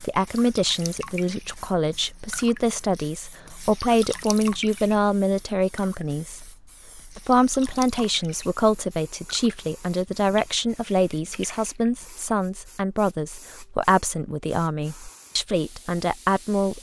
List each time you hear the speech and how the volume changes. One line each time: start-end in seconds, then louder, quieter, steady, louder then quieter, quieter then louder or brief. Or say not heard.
0.0-16.7 steady.